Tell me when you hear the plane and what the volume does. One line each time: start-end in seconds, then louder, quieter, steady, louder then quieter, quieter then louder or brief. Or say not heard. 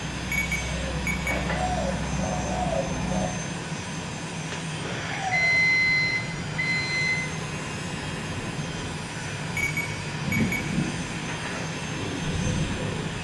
0.0-13.2 steady.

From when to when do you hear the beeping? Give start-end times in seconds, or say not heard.
0.3-1.4, 5.3-7.2, 9.6-10.7.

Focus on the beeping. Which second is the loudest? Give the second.
6 s.